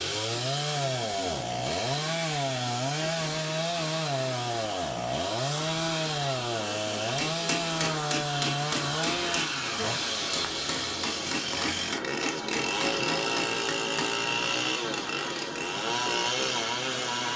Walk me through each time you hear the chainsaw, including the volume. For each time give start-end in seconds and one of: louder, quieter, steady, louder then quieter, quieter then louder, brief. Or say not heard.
0.0-17.3 steady.